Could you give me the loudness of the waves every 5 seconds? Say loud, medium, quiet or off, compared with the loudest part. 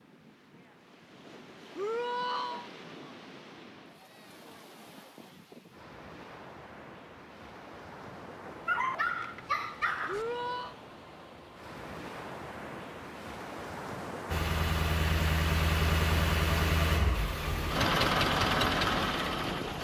medium, medium, loud, loud.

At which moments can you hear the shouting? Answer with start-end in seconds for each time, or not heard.
1.8-2.7, 10.1-10.8.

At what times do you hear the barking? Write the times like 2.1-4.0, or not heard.
8.7-10.2.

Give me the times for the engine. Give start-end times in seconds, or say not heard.
14.2-19.7.